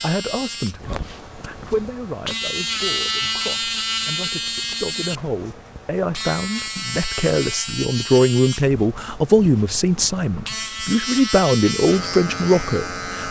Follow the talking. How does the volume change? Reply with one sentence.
The volume of the talking goes up.